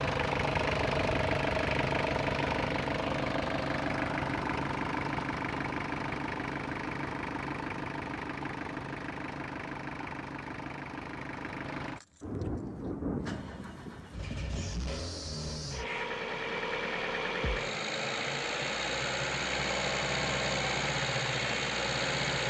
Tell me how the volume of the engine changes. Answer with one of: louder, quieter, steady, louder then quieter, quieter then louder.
quieter then louder.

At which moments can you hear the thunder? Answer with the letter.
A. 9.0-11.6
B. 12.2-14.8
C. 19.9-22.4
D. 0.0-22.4
B.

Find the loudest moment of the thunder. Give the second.
13 s.